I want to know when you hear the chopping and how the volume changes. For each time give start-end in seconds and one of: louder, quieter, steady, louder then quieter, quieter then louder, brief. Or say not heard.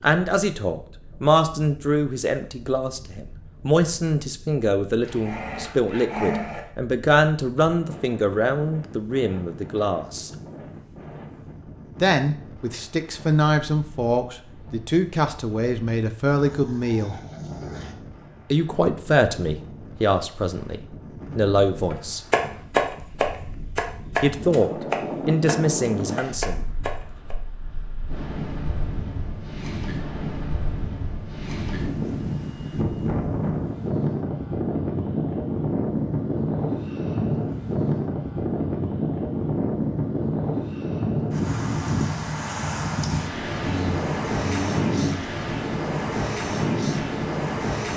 21.9-27.4 quieter then louder.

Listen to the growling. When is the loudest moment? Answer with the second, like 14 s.
6 s.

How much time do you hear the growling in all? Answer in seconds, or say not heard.
5 s.